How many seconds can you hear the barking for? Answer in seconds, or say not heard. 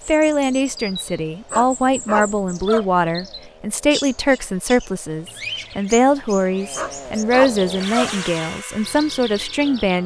3 s.